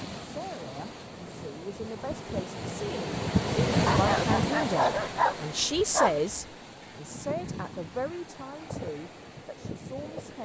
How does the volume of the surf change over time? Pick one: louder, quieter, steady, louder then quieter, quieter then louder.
louder then quieter.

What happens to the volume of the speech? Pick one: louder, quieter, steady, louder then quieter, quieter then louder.
louder then quieter.